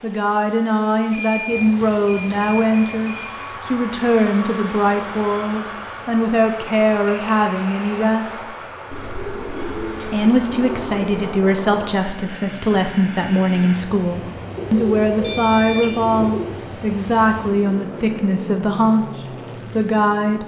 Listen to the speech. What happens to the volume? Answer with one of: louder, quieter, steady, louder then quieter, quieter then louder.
steady.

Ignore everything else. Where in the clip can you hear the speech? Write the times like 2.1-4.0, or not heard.
0.0-8.6, 10.1-20.4.